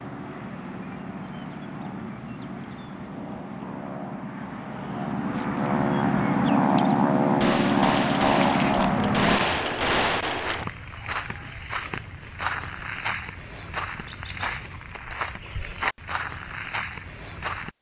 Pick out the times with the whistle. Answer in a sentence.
You can't hear the whistle here.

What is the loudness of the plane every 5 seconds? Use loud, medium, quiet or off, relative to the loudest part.
quiet, loud, off, off.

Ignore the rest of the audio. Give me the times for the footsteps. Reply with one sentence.
The footsteps can be heard from 8.3 to 17.7 s.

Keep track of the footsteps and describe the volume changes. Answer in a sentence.
The loudness of the footsteps stays about the same.